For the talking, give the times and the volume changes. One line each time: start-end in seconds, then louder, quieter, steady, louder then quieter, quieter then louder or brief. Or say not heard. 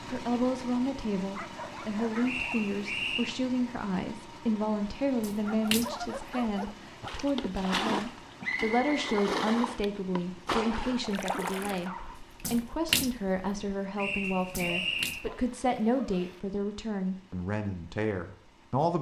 0.1-18.9 steady.